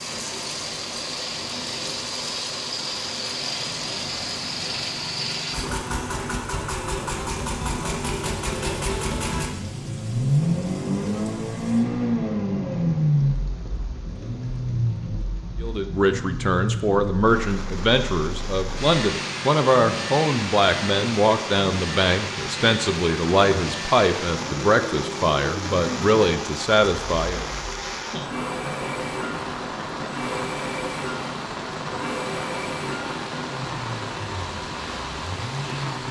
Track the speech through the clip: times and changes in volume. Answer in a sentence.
The speech can be heard from 15.6 to 27.4 s, at a steady volume.